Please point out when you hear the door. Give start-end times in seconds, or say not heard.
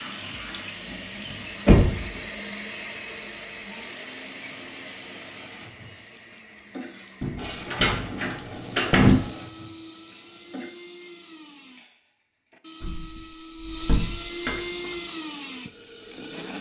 1.2-2.2, 7.2-9.2, 12.8-14.7.